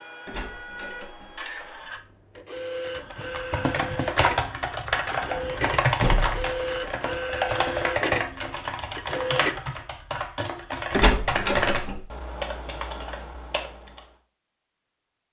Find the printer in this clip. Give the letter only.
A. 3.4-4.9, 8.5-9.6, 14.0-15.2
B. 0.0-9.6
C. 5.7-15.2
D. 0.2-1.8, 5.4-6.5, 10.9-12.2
B.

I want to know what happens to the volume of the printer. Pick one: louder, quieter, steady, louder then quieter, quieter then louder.
louder.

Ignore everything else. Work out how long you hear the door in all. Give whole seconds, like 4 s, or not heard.
4 s.